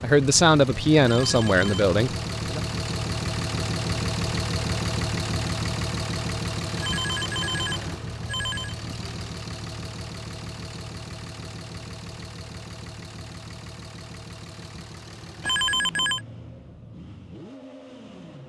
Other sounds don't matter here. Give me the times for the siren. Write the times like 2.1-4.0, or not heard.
not heard.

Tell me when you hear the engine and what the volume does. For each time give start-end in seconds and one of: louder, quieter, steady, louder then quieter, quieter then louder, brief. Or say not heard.
0.0-18.4 quieter.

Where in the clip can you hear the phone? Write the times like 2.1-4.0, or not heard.
1.1-1.9, 6.8-8.8, 15.4-16.2.